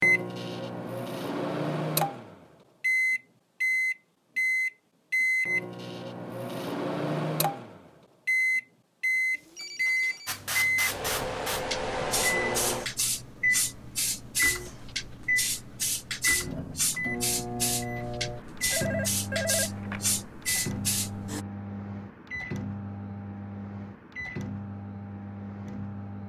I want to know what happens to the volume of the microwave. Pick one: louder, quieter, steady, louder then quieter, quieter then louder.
quieter.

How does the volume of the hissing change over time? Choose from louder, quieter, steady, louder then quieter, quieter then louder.
steady.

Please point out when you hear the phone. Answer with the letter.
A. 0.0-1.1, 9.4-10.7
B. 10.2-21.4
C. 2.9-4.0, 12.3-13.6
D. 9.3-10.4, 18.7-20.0
D.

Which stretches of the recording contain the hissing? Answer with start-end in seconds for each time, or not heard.
10.2-21.4.